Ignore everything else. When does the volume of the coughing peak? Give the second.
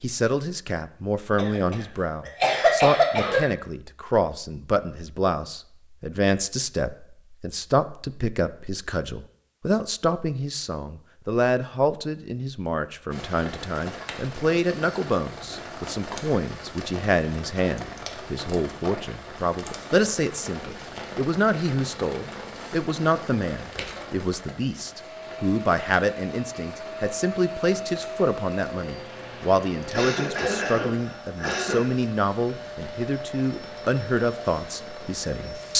3 s.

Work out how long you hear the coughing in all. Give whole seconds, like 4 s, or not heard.
4 s.